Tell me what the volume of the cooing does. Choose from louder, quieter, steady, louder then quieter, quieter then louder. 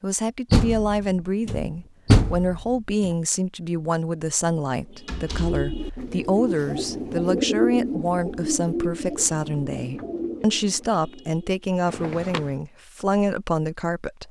louder then quieter.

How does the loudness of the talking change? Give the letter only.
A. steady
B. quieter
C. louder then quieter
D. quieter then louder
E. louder
A.